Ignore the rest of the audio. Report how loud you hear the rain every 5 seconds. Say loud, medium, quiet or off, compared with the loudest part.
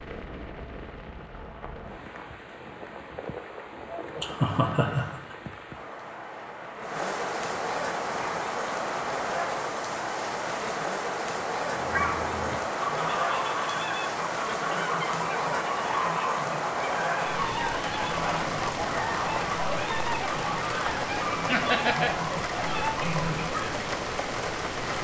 medium, loud, loud, loud, loud.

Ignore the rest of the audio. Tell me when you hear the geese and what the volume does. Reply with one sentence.
You can hear the geese from 11.7 to 23.8 s, at a steady volume.